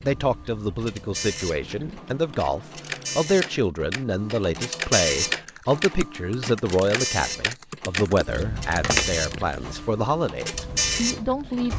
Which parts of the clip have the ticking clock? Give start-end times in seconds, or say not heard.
0.0-11.7.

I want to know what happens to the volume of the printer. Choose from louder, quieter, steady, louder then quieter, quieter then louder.
louder.